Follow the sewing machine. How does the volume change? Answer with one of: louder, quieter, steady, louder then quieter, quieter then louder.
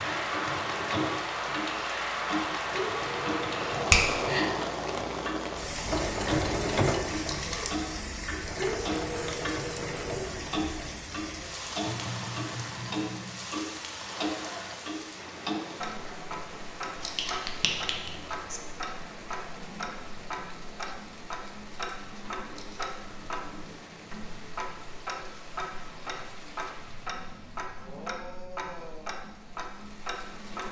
louder then quieter.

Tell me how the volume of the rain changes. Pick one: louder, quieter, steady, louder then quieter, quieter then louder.
quieter.